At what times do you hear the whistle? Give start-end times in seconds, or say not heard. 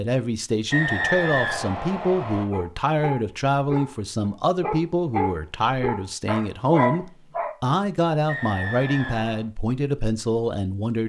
0.7-2.5, 8.2-9.4.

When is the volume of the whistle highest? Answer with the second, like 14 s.
1 s.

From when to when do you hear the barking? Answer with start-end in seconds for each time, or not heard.
2.5-7.5.